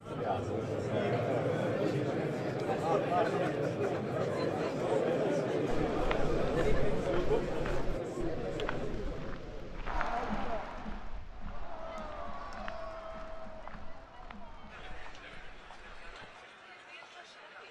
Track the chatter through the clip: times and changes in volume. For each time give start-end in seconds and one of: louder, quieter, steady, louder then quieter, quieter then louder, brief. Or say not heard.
0.0-17.6 quieter.